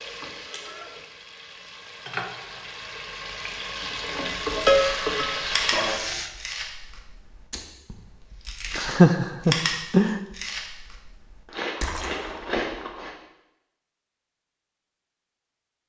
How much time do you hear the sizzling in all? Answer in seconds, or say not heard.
6 s.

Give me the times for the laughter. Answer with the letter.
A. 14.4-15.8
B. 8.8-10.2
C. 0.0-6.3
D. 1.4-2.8
B.